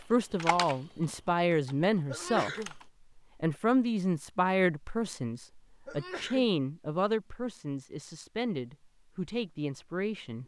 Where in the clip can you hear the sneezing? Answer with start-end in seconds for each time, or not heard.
2.0-2.8, 5.8-6.5.